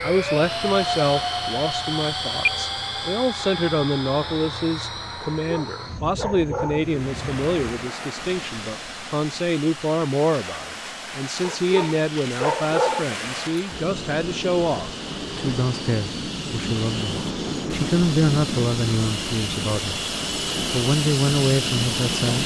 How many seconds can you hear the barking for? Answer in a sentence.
The barking can be heard for 3 seconds in total.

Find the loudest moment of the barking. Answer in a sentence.
The loudest moment of the barking is at 13 seconds.